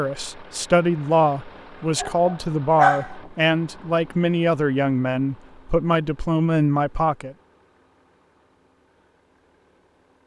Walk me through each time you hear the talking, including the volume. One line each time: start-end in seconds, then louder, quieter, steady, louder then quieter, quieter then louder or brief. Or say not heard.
0.0-7.3 steady.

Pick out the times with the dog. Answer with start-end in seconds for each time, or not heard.
1.9-3.1.